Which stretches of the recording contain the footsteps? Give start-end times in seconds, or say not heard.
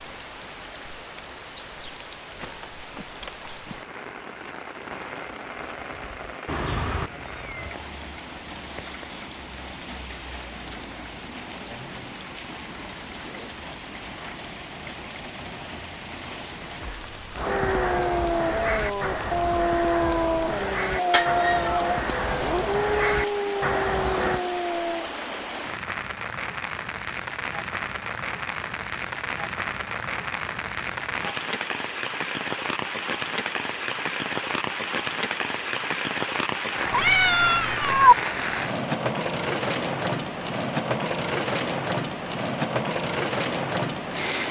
not heard.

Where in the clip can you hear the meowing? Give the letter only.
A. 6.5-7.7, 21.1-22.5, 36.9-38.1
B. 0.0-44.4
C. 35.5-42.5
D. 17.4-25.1
A.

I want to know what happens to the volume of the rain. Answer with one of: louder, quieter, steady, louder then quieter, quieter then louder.
louder.